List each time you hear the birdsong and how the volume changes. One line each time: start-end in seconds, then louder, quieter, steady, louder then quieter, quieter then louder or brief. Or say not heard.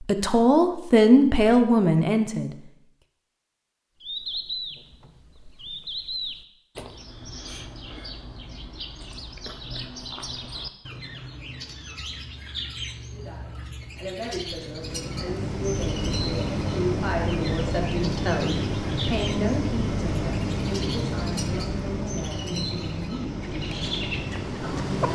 4.0-25.1 steady.